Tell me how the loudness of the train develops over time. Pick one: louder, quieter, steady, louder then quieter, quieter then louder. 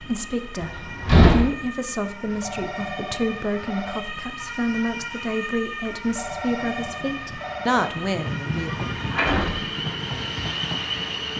louder.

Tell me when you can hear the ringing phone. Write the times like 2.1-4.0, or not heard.
2.3-4.0, 6.0-7.8.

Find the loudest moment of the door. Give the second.
1 s.